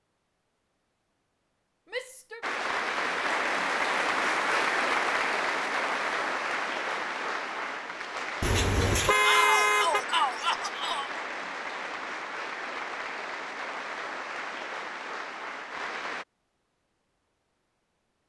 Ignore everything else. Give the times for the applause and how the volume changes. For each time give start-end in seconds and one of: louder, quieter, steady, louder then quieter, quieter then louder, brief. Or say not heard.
2.4-16.2 quieter.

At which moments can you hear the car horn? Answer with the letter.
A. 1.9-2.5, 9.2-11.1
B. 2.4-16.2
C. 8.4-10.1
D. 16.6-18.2
C.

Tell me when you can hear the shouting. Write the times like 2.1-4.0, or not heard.
1.9-2.5, 9.2-11.1.